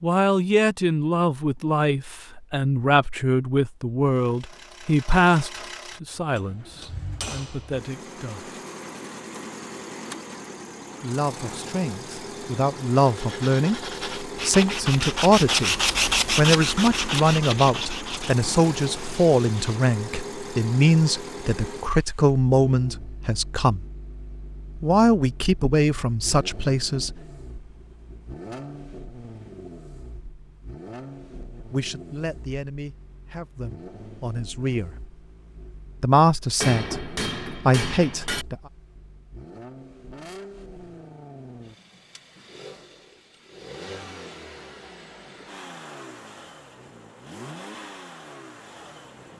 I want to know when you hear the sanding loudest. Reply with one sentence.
The volume of the sanding peaks at 16 seconds.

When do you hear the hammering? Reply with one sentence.
You can hear the hammering from 6.3 to 7.8 s and from 36.6 to 38.5 s.